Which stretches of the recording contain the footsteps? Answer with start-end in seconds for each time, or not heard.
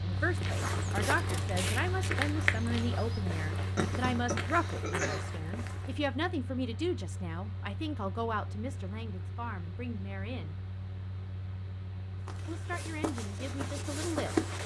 0.1-6.2, 12.2-14.6.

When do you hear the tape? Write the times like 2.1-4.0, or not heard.
0.9-2.1.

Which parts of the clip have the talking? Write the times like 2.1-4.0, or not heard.
0.0-10.6, 12.4-14.6.